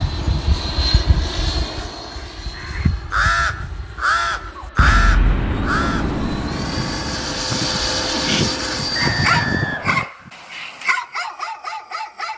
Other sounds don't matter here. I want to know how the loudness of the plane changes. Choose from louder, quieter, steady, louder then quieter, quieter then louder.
quieter then louder.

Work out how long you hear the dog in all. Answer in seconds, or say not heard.
3 s.